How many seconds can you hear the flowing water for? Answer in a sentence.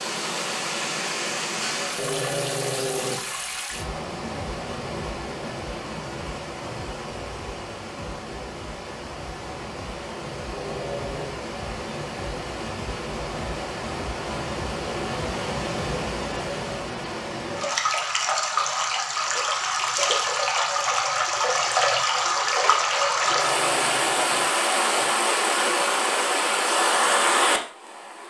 You can hear the flowing water for 28 seconds altogether.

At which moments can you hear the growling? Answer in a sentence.
You can hear the growling from 1.9 to 3.5 s, from 10.4 to 11.4 s and from 23.1 to 25.1 s.